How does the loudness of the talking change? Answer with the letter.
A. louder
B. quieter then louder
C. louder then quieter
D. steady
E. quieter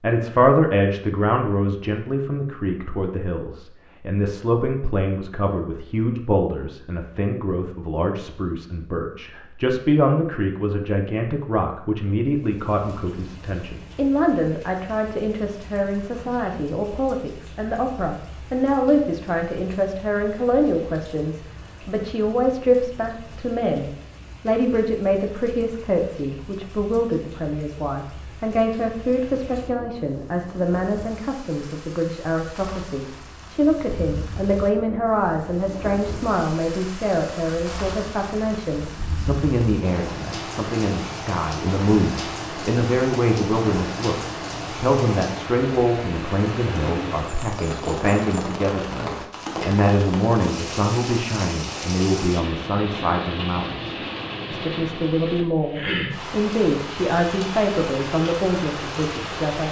D.